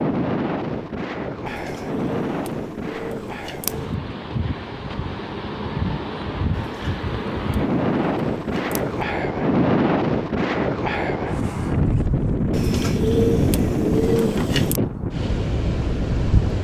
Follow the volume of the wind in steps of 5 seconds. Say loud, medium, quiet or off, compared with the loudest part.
medium, loud, loud, loud.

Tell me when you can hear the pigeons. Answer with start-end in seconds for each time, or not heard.
1.4-4.0, 6.5-8.9, 12.5-14.8.